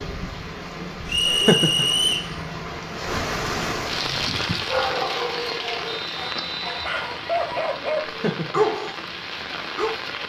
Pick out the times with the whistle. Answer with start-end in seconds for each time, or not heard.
1.1-2.3, 5.8-6.8.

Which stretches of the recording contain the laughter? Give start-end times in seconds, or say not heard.
1.2-1.9, 8.1-8.6.